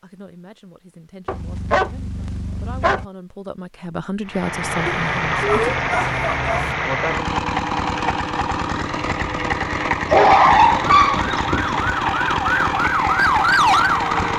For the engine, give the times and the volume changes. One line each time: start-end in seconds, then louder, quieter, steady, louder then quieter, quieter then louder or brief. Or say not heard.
4.2-14.3 steady.